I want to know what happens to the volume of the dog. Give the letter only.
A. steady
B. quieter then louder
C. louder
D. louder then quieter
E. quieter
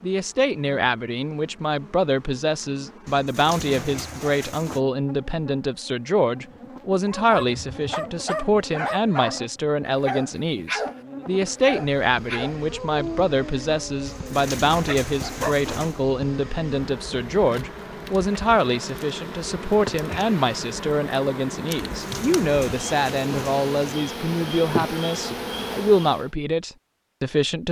E.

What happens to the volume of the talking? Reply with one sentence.
The loudness of the talking stays about the same.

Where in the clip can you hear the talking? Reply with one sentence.
You can hear the talking from 0.0 to 27.6 s.